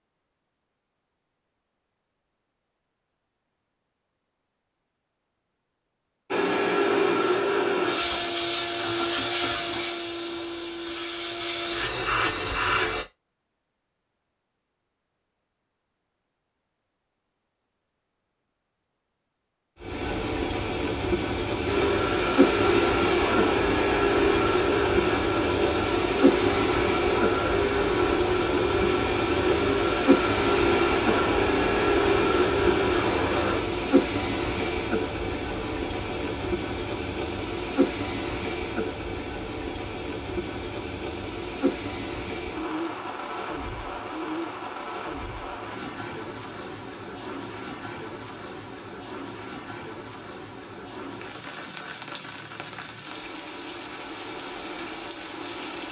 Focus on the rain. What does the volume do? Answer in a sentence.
The volume of the rain goes down.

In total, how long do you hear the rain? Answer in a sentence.
The rain can be heard for 36 seconds in total.